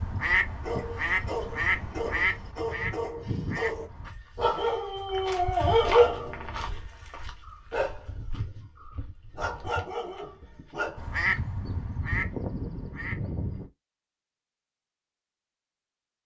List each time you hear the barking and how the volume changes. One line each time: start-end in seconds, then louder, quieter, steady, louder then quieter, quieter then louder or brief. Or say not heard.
0.6-11.2 louder then quieter.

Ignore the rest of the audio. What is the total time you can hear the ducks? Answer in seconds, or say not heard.
7 s.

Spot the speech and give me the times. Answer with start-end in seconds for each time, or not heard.
not heard.